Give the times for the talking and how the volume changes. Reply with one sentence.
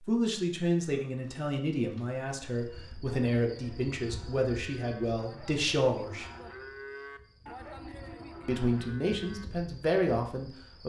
You can hear the talking from 0.1 to 6.2 s, at a steady volume; and briefly from 8.4 to 10.8 s.